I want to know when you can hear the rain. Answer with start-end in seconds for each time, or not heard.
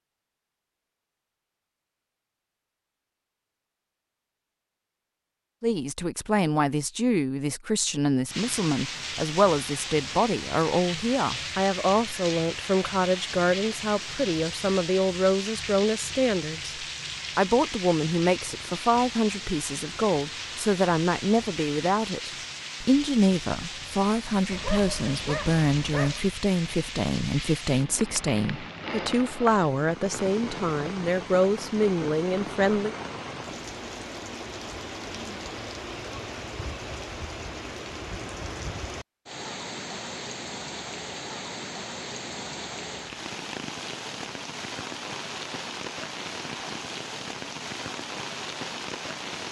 8.2-49.4.